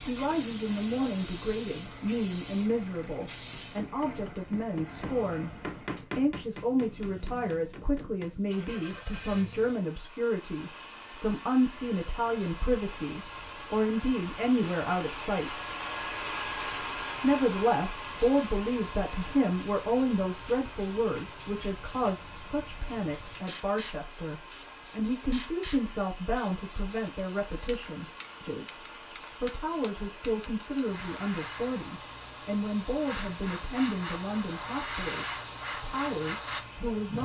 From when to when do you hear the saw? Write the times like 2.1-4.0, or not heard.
not heard.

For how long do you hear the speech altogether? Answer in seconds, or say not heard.
36 s.